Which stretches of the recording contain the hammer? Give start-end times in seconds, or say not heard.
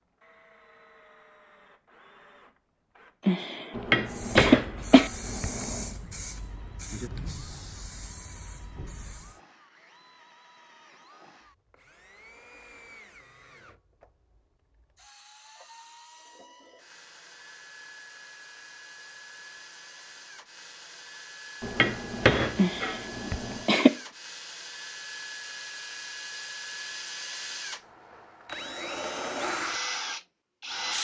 3.8-6.0, 21.6-23.6.